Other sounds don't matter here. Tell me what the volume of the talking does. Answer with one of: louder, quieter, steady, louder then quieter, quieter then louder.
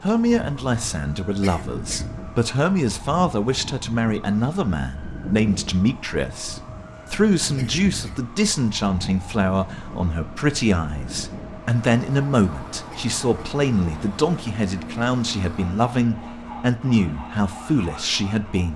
steady.